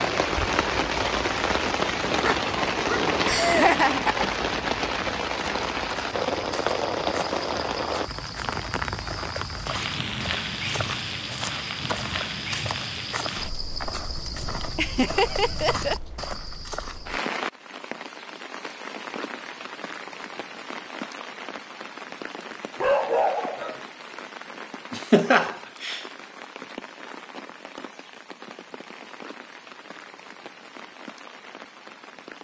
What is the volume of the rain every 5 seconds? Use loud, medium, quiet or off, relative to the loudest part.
loud, loud, medium, medium, quiet, quiet, quiet.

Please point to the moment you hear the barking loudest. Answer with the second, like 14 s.
23 s.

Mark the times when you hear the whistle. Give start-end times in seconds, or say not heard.
not heard.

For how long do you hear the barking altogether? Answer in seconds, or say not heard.
3 s.